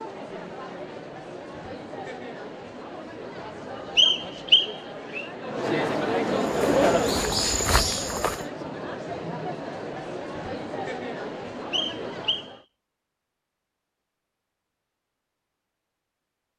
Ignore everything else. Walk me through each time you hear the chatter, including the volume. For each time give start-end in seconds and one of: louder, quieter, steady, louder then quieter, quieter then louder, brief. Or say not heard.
0.0-12.7 louder then quieter.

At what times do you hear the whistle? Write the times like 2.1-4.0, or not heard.
4.0-5.2, 11.7-12.5.